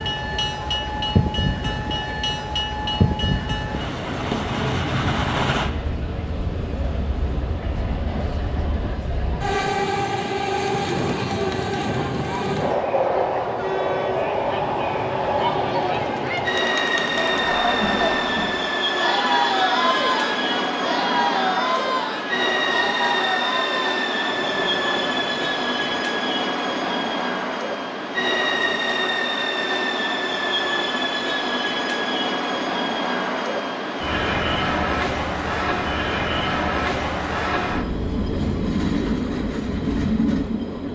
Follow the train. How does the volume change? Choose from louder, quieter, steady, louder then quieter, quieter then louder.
steady.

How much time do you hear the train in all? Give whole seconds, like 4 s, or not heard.
41 s.